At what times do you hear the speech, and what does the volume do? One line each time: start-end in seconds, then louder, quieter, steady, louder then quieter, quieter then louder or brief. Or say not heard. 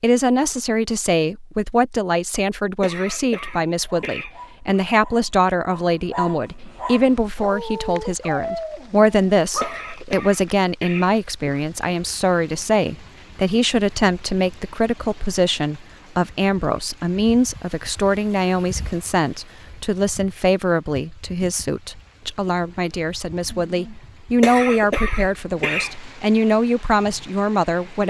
0.0-28.0 steady.